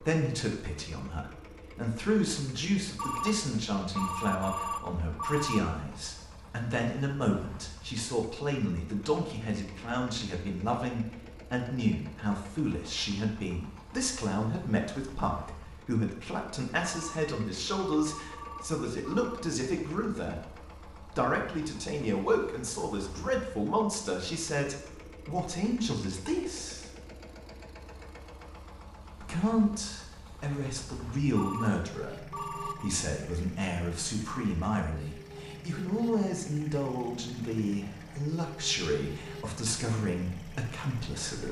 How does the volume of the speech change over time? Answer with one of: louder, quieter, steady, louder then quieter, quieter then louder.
steady.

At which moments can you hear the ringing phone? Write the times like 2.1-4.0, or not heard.
3.0-5.6, 16.8-19.4, 31.4-33.0.